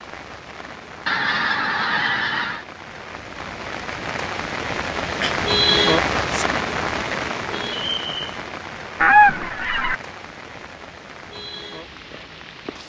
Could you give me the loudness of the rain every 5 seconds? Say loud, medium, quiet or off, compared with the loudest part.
medium, loud, quiet.